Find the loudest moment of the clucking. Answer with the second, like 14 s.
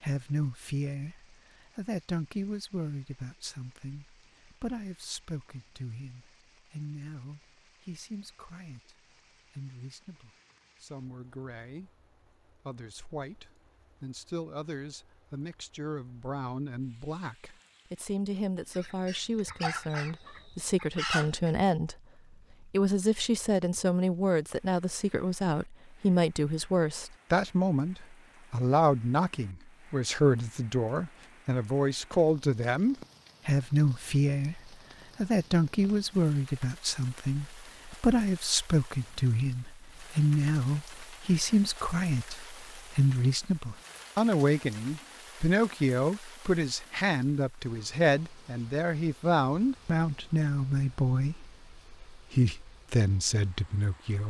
21 s.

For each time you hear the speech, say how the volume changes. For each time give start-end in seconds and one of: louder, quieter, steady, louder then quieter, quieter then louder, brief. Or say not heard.
0.0-21.9 quieter then louder
22.7-54.2 steady.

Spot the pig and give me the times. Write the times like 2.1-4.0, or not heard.
not heard.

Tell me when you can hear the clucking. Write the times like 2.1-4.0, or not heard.
18.7-21.5.